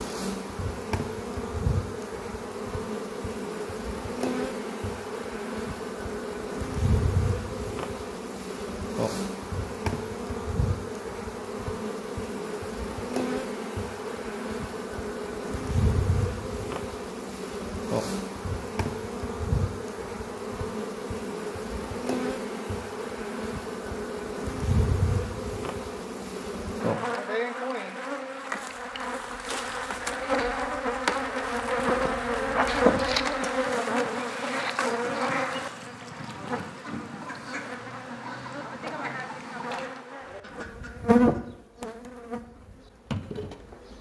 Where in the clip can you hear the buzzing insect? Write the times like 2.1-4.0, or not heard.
0.0-43.9.